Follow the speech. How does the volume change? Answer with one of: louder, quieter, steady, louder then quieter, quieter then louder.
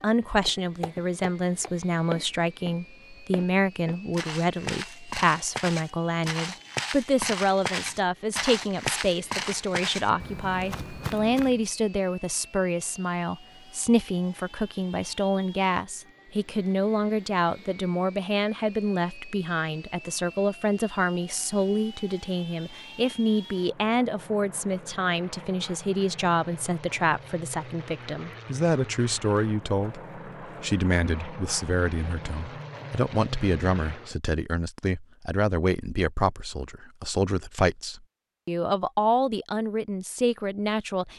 steady.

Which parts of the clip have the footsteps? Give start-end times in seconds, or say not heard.
0.5-11.7.